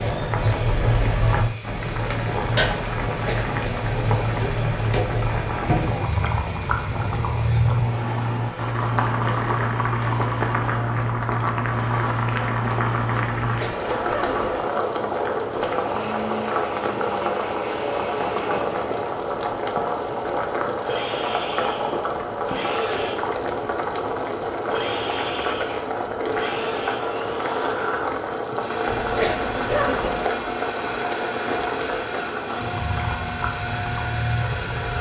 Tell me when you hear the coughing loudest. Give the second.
30 s.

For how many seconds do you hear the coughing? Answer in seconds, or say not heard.
3 s.